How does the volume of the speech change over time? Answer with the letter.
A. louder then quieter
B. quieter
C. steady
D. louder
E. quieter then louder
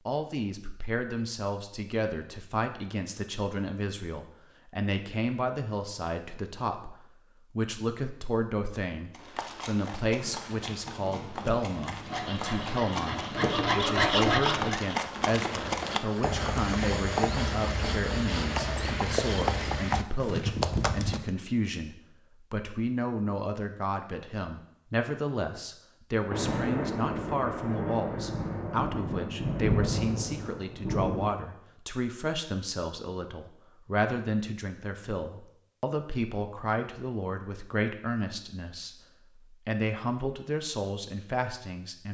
C.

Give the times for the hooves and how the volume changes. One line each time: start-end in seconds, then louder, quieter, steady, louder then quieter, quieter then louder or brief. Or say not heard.
9.1-21.3 louder.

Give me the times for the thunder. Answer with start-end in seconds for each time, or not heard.
10.2-13.7, 26.3-31.3.